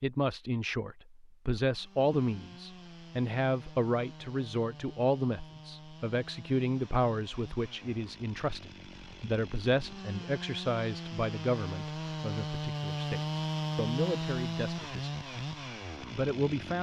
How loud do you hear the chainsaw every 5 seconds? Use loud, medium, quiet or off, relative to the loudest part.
quiet, quiet, loud, medium.